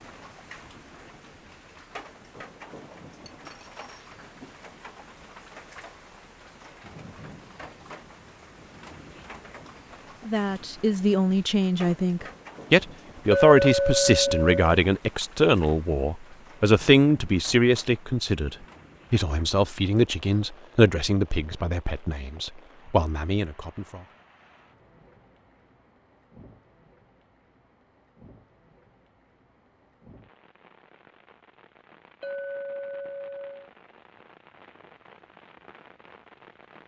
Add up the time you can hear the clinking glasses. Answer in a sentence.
The clinking glasses can be heard for 4 seconds in total.